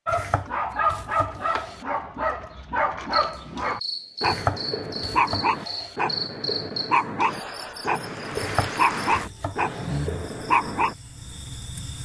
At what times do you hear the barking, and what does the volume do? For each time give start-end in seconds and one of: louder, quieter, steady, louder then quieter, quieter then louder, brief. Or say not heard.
0.1-10.9 steady.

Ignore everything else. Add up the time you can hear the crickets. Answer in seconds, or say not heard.
9 s.